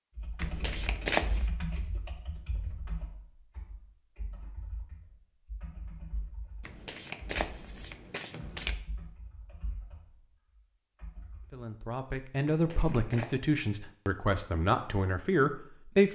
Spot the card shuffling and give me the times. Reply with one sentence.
You can hear the card shuffling from 0.4 to 1.5 s, from 6.7 to 8.8 s and from 12.4 to 13.3 s.